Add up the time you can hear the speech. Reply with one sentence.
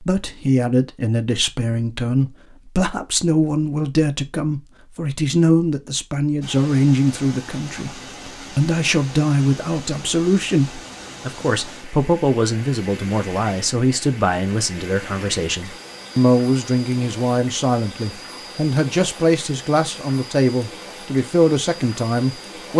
You can hear the speech for 23 seconds altogether.